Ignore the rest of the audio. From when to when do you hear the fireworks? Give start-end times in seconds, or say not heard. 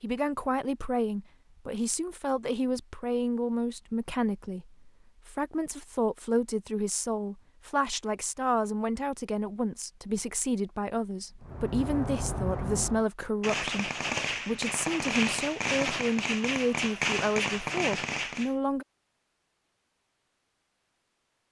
11.4-18.6.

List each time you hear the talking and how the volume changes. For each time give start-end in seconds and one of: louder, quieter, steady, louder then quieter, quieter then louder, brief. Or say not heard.
0.0-18.9 steady.